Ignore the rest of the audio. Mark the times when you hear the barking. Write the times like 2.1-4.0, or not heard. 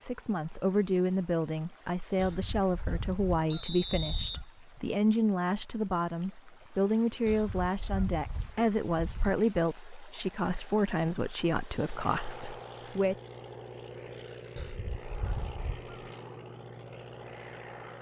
not heard.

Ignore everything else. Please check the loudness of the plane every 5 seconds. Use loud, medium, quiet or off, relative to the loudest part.
off, off, loud, loud.